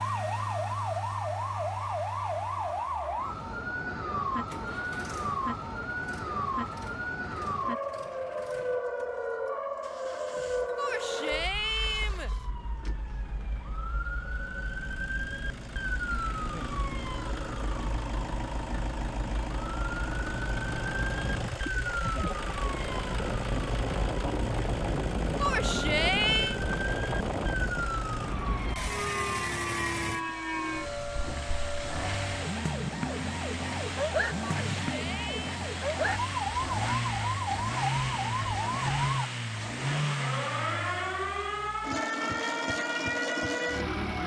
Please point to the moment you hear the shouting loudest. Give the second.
26 s.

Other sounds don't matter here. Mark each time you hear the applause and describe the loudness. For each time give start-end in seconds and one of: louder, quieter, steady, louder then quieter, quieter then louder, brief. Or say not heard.
not heard.